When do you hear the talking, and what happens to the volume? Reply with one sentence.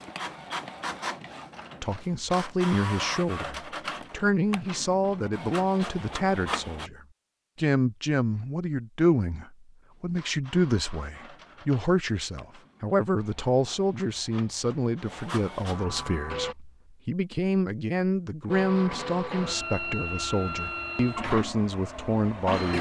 The talking can be heard from 1.8 to 22.7 s, at a steady volume.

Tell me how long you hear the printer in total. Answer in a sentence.
The printer can be heard for 18 seconds in total.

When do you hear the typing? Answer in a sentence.
The typing can't be heard in this clip.